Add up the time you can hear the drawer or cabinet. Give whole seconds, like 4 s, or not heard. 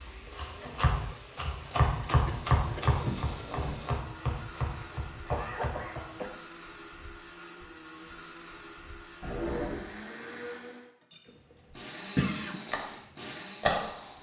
2 s.